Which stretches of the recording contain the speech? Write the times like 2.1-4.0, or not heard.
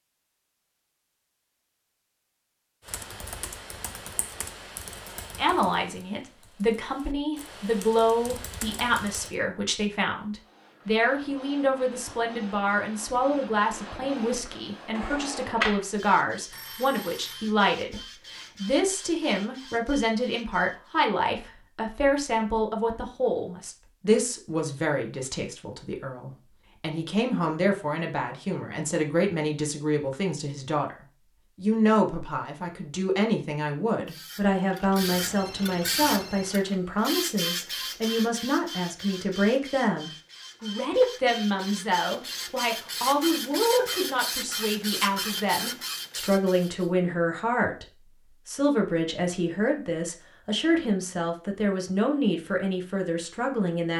5.3-30.9, 31.6-47.9, 48.5-53.9.